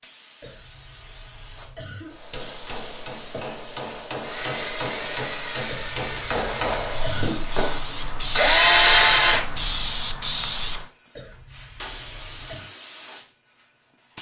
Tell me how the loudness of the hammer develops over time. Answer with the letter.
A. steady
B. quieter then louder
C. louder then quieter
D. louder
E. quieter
D.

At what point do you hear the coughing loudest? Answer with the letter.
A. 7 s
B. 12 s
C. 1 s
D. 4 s
A.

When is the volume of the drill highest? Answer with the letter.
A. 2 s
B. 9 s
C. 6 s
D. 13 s
B.